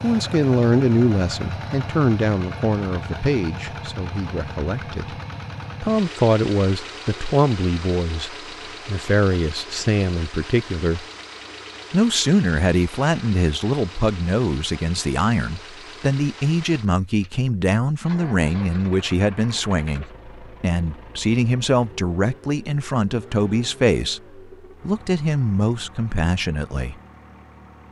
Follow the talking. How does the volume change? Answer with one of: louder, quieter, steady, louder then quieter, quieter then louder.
steady.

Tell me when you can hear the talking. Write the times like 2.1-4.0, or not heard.
0.0-5.2, 5.8-11.1, 11.9-26.9.